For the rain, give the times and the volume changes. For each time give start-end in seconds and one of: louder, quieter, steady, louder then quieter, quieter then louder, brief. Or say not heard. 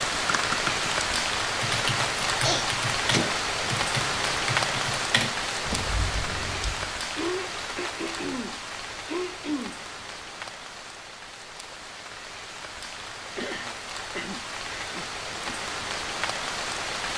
0.0-17.1 quieter then louder.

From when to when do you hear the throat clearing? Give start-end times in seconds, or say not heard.
2.4-3.3, 7.2-9.8, 13.3-15.6.